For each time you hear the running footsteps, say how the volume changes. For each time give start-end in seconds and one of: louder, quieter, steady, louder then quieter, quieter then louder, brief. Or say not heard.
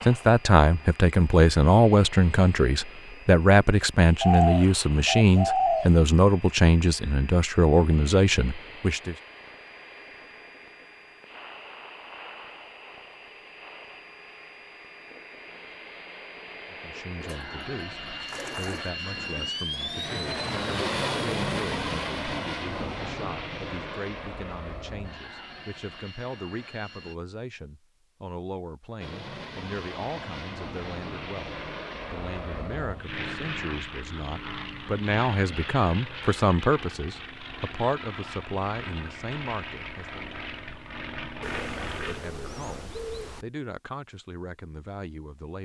not heard.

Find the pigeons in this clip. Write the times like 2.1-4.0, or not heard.
4.2-5.9, 17.3-18.9, 41.4-43.5.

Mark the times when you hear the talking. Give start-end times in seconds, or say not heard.
0.0-9.2, 16.7-40.4, 41.9-45.6.